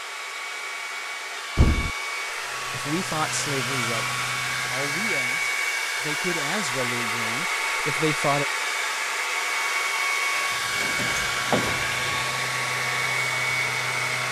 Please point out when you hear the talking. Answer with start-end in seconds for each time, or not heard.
2.7-8.4.